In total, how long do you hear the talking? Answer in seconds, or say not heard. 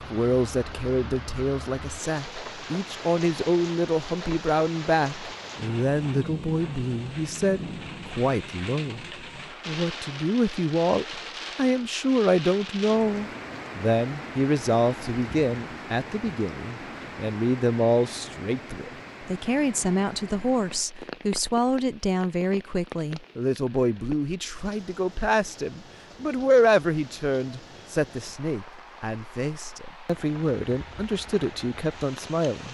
32 s.